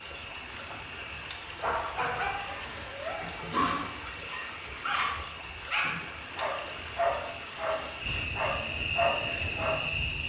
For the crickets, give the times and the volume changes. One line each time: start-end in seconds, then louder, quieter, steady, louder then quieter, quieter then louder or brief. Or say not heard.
0.0-10.2 louder.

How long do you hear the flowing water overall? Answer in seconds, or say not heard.
8 s.